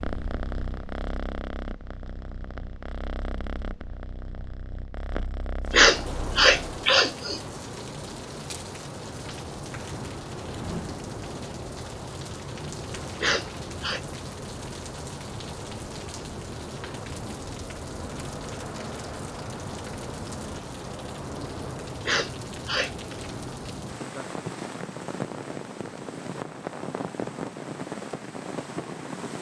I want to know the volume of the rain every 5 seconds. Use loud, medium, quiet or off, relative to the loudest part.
off, loud, loud, loud, loud, loud.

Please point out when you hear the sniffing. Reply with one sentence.
You can hear the sniffing from 5.7 to 7.4 s, from 13.2 to 14.0 s and from 22.1 to 22.9 s.